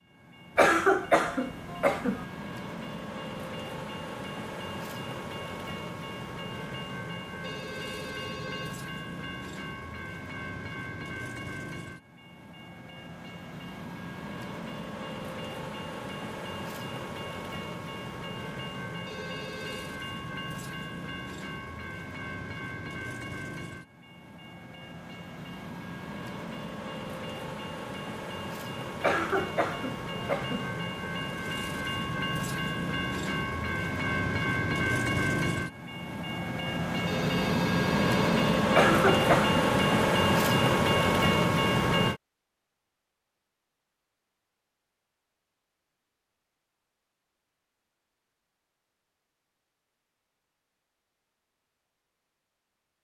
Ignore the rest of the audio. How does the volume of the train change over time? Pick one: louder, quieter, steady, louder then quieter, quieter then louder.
louder.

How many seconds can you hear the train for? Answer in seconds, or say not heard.
42 s.